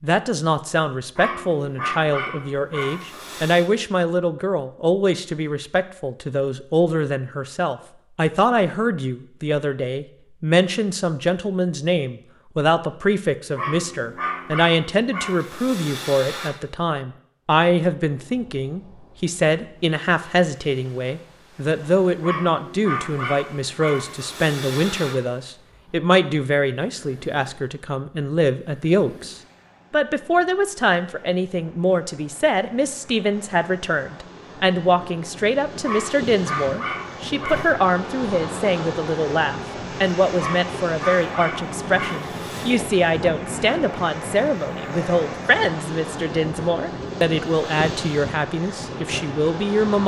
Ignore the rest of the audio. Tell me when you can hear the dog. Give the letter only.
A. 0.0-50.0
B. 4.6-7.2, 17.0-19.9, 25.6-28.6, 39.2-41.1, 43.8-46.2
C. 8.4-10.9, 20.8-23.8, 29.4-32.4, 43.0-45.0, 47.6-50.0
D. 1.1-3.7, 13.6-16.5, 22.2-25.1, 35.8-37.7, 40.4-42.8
D.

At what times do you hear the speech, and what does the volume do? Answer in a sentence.
The speech can be heard from 0.0 to 50.0 s, at a steady volume.